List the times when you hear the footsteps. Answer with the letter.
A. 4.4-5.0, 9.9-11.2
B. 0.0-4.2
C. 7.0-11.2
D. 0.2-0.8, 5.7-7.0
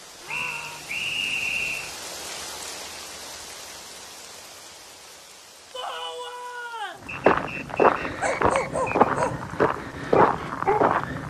C.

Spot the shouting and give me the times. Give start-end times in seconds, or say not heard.
0.2-0.8, 5.7-7.0.